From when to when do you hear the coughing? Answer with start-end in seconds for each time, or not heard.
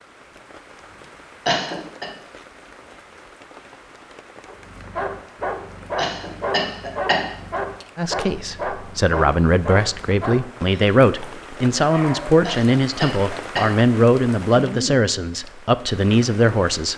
1.4-2.0, 6.0-7.2, 12.4-13.7.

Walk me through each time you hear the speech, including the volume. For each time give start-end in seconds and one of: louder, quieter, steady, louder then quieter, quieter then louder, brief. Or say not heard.
8.0-16.9 steady.